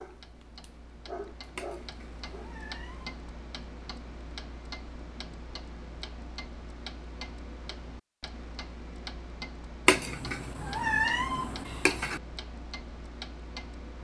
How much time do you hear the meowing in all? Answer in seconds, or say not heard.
4 s.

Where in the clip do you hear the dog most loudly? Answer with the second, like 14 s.
1 s.